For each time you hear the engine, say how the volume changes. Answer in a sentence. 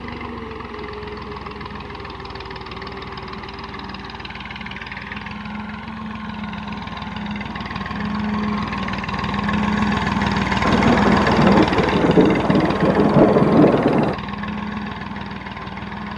You can hear the engine from 0.0 to 16.1 s, getting louder then quieter.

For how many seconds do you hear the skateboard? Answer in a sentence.
You can't hear the skateboard here.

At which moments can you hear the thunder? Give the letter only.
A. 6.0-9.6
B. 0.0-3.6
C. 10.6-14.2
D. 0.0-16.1
C.